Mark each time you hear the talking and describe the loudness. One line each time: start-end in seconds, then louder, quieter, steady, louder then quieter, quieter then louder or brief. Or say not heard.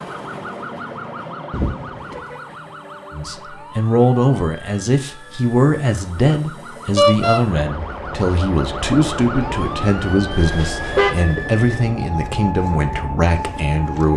3.1-14.1 steady.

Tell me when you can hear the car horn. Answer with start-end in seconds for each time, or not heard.
1.5-2.4, 7.0-7.4, 10.3-11.1.